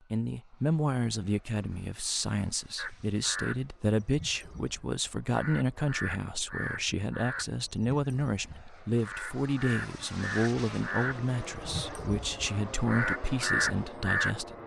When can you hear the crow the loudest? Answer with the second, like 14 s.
14 s.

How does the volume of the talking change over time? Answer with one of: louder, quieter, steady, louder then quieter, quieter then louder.
steady.